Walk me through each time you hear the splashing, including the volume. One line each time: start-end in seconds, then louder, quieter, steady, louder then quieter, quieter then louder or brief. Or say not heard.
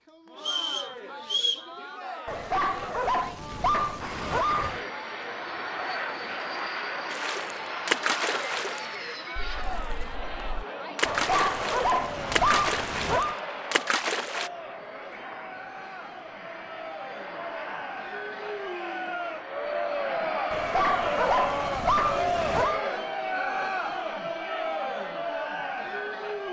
7.1-14.5 quieter then louder.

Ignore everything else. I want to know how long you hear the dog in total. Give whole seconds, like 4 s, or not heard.
7 s.